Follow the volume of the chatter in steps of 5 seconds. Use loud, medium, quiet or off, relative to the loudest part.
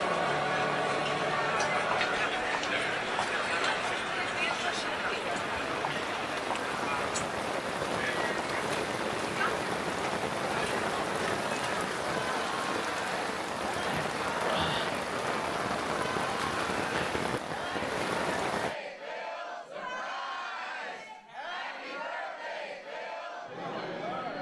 loud, medium, medium, medium, medium.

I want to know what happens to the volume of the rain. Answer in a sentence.
The loudness of the rain goes up.